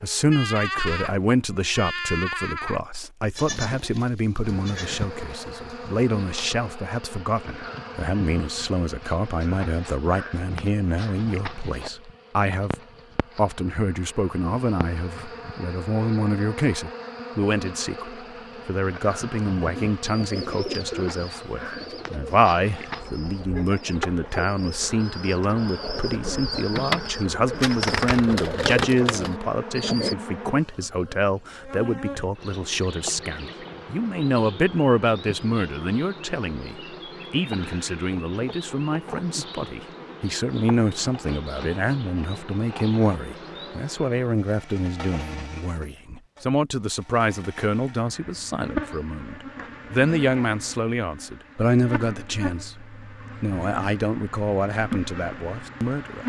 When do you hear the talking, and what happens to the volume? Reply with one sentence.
You can hear the talking from 0.0 to 12.8 s, at a steady volume; and from 13.3 to 56.2 s, at a steady volume.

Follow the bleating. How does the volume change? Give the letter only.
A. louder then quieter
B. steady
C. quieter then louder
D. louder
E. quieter
E.